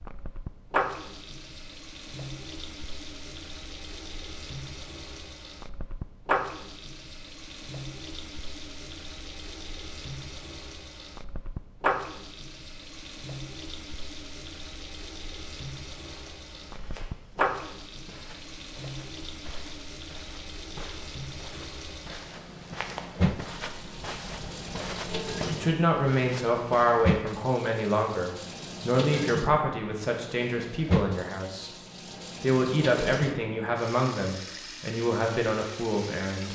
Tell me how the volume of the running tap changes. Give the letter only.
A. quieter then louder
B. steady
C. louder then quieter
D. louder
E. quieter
B.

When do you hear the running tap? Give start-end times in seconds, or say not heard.
0.0-36.5.